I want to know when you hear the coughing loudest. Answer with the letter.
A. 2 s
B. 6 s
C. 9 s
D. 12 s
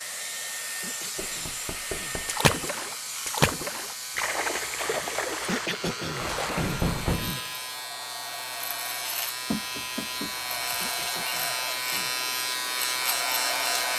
B.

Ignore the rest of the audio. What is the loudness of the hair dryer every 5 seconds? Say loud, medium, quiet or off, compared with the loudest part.
loud, medium, loud.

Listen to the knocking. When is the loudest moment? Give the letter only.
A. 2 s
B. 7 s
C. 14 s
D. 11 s
B.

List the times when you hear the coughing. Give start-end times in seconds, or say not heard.
0.8-2.2, 5.5-7.4, 10.8-12.1.